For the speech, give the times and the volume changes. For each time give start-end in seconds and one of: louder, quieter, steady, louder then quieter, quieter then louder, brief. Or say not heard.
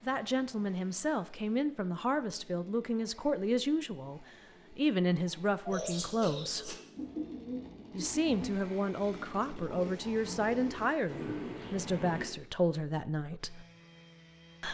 0.0-6.8 steady
7.9-13.7 steady.